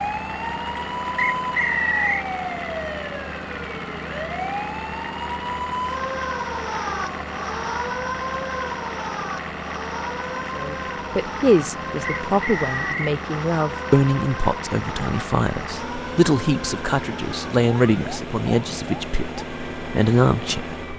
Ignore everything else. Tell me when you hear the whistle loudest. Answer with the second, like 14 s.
2 s.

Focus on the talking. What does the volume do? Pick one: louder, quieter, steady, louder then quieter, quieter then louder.
steady.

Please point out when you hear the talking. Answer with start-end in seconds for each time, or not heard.
10.6-20.8.